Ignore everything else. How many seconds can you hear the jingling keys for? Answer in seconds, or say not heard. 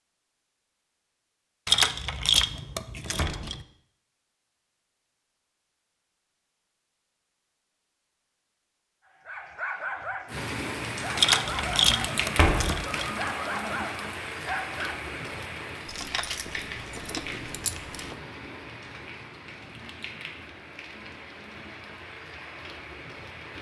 6 s.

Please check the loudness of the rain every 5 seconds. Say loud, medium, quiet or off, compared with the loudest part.
off, off, loud, medium, medium.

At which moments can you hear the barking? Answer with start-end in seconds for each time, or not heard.
9.1-15.2.